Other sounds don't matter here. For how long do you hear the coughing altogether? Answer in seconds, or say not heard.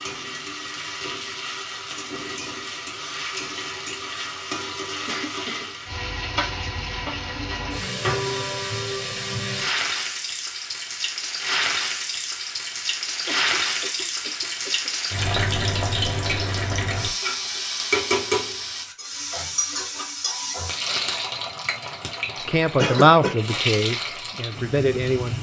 3 s.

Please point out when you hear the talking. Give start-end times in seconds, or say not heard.
22.4-25.3.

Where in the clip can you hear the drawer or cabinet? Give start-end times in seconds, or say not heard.
not heard.